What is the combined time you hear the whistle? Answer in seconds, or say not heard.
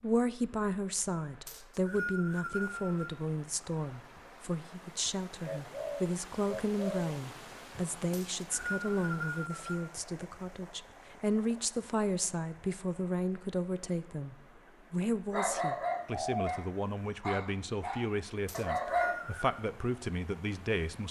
5 s.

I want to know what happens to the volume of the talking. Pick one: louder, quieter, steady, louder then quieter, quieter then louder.
steady.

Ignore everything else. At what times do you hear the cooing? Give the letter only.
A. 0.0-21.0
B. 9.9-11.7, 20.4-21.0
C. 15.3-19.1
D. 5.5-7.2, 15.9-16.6
D.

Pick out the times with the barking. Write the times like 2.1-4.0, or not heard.
15.3-19.1.